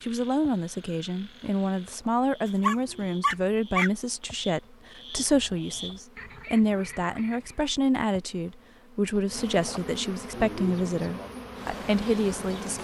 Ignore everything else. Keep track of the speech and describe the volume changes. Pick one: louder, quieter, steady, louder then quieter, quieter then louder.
steady.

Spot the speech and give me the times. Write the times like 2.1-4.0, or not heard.
0.0-12.7.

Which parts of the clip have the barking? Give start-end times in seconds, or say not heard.
2.6-3.9.